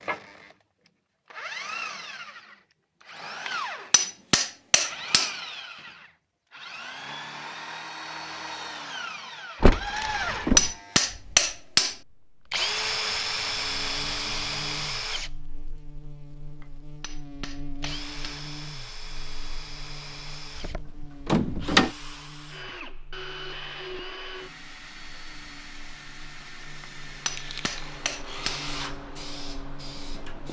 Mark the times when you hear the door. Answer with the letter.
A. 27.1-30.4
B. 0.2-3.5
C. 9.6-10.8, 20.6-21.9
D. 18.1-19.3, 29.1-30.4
C.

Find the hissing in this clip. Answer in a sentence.
You can hear the hissing from 27.1 to 30.4 s.